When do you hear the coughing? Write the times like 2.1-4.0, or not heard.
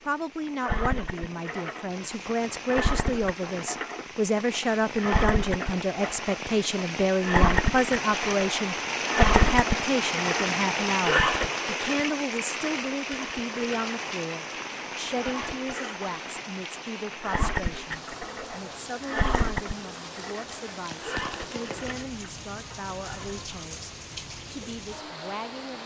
not heard.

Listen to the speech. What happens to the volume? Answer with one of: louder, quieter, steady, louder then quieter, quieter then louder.
quieter.